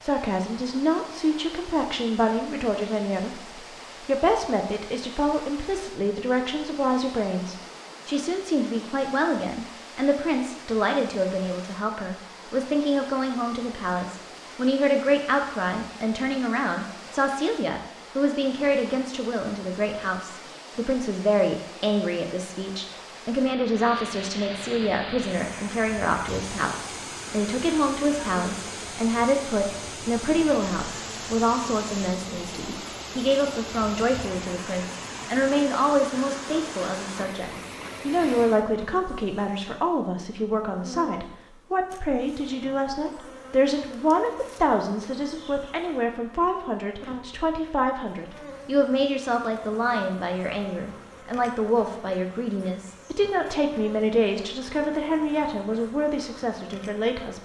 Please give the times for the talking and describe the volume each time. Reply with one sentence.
The talking can be heard from 0.0 to 57.3 s, at a steady volume.